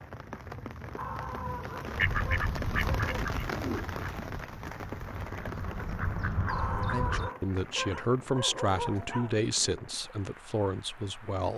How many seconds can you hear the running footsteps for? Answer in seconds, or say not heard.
not heard.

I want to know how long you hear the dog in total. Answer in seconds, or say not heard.
5 s.